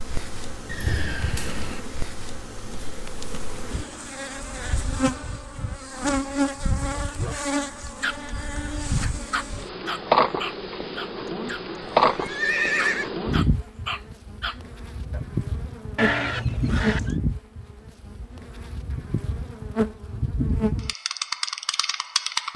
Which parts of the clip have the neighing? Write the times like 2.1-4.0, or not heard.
0.7-1.8, 11.8-13.1, 15.9-17.1.